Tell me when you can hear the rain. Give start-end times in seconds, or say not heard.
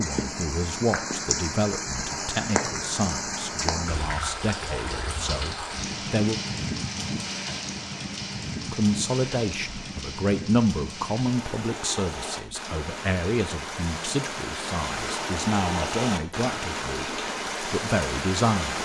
0.0-18.8.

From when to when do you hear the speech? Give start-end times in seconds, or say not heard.
0.0-6.4, 8.7-18.8.